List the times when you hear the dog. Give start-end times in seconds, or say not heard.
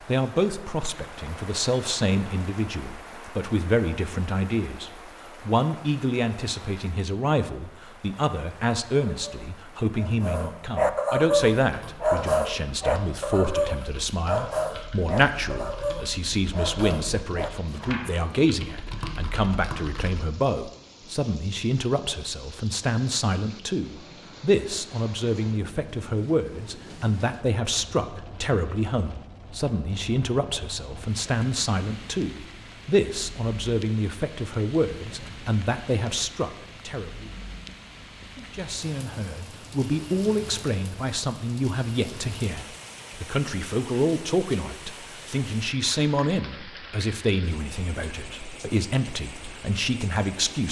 9.1-18.6.